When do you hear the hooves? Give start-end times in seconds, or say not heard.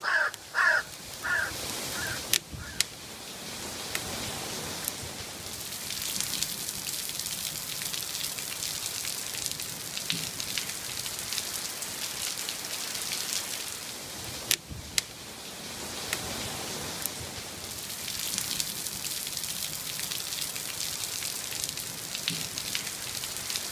not heard.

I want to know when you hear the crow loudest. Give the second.
1 s.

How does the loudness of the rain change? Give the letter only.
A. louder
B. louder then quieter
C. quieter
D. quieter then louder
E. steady
E.